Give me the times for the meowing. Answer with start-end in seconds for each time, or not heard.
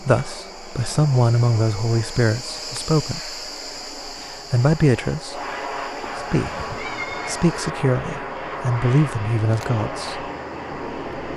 6.0-7.3.